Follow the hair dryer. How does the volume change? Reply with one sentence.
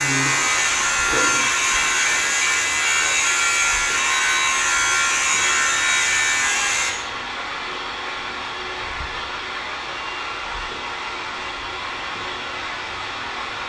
The volume of the hair dryer stays about the same.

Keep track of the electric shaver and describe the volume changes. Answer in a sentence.
The volume of the electric shaver stays about the same.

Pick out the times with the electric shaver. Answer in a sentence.
You can hear the electric shaver from 0.0 to 7.0 s.